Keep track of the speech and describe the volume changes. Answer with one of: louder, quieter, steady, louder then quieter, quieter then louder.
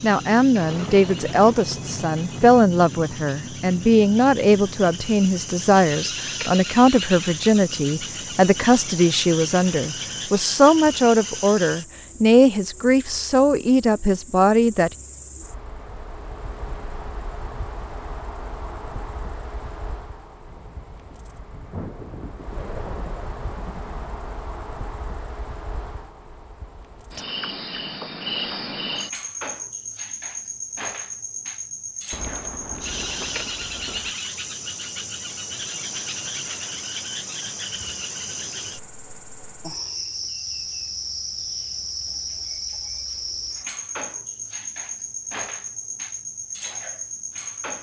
steady.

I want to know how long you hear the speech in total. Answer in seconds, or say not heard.
15 s.